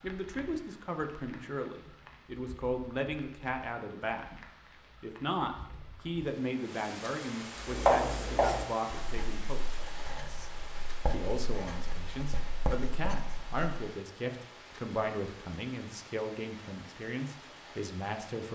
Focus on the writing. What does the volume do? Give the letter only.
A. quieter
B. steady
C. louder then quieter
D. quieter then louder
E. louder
D.